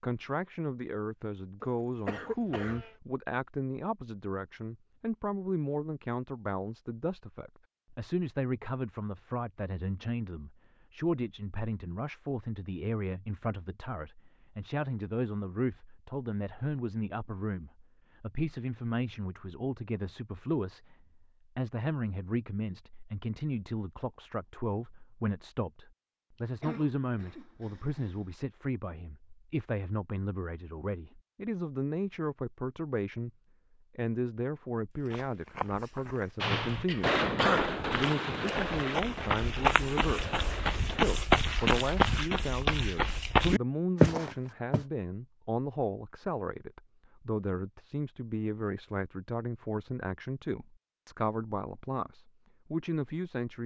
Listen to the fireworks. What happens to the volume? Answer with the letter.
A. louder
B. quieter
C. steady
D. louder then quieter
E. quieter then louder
B.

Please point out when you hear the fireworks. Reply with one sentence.
The fireworks can be heard from 36.4 to 42.2 s.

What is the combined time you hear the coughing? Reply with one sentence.
The coughing can be heard for 4 seconds in total.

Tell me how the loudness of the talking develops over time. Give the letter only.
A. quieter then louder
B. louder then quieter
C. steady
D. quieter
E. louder
C.